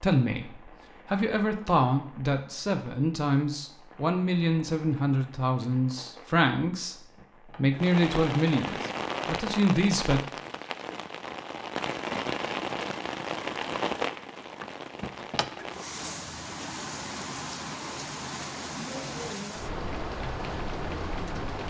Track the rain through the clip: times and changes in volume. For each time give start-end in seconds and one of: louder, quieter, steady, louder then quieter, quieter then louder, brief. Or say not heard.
0.2-21.6 louder.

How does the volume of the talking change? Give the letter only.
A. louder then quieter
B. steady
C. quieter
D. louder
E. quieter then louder
B.